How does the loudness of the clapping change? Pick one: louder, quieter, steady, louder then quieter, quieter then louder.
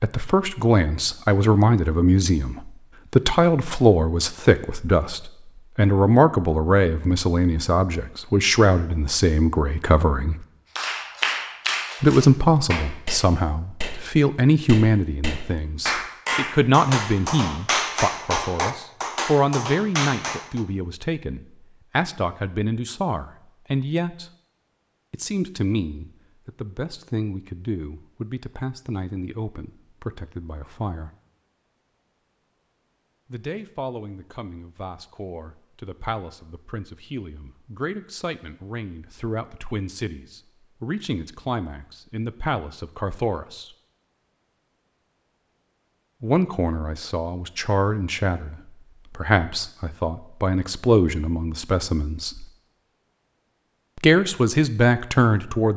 quieter then louder.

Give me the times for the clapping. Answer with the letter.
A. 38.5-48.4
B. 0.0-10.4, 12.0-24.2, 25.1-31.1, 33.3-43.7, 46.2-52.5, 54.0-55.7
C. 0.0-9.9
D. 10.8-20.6
D.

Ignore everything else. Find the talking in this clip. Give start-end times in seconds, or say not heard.
0.0-10.4, 12.0-24.2, 25.1-31.1, 33.3-43.7, 46.2-52.5, 54.0-55.7.